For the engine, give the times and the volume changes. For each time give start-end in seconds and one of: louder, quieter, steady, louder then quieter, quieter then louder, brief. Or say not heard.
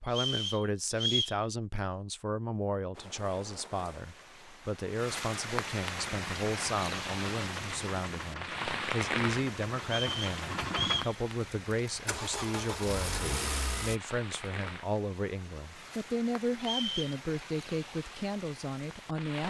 6.0-14.0 louder.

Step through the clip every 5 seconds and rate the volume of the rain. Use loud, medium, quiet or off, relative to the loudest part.
quiet, loud, medium, medium.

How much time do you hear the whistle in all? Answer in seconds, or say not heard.
3 s.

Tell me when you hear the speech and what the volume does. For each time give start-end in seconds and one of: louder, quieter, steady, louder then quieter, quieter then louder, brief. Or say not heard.
0.0-19.4 steady.